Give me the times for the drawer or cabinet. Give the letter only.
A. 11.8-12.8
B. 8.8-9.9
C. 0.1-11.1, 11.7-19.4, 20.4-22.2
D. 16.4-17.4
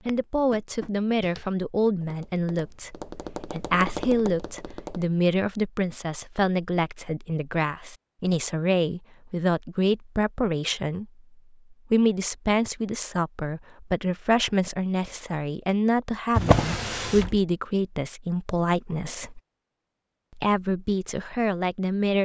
D.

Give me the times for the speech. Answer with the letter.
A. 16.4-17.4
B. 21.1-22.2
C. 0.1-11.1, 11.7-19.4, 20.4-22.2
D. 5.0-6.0
C.